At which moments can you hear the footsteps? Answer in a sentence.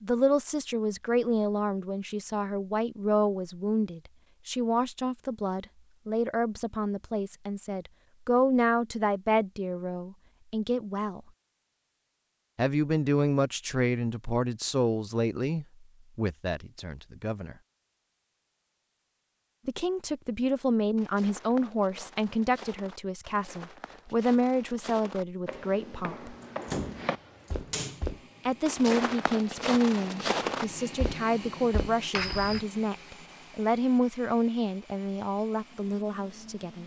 The footsteps can be heard from 20.9 to 32.6 s.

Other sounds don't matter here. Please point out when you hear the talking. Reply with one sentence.
You can hear the talking from 0.0 to 11.2 s, from 12.6 to 17.6 s, from 19.6 to 26.4 s and from 28.4 to 36.8 s.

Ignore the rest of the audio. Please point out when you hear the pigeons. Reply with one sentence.
The pigeons can't be heard in this clip.